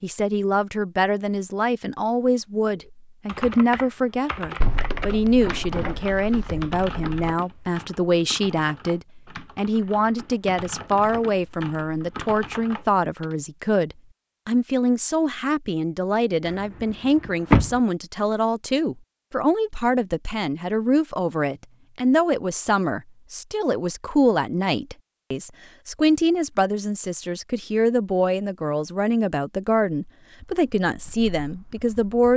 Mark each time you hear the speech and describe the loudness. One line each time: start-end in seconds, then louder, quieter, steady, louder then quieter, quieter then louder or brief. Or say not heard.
0.0-32.3 steady.